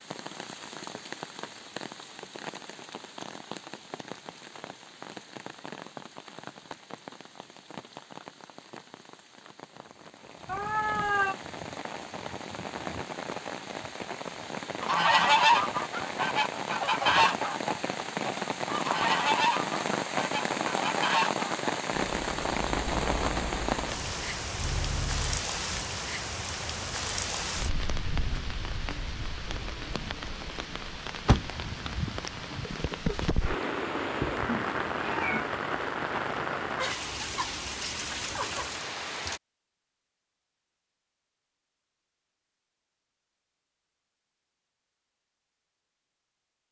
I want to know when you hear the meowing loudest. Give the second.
11 s.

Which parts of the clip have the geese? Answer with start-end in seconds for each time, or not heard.
14.8-21.5.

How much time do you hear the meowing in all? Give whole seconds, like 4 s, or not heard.
2 s.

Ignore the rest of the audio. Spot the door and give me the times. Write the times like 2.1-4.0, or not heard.
31.2-32.6.